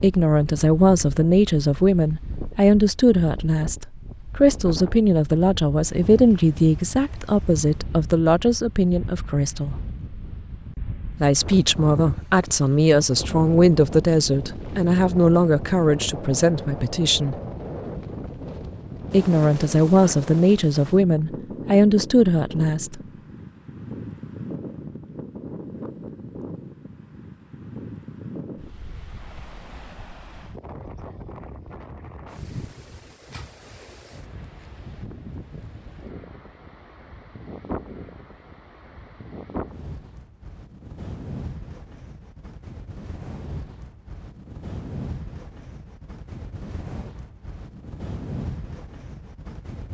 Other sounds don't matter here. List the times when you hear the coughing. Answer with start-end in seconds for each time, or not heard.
not heard.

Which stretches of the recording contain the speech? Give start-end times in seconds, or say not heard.
0.0-9.8, 11.1-17.4, 19.1-23.0.